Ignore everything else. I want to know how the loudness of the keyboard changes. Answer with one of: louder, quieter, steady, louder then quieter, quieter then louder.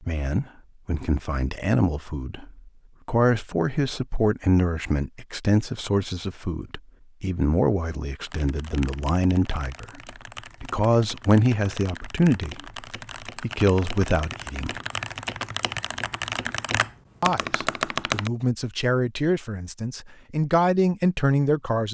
louder.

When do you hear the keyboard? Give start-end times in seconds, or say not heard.
8.2-18.3.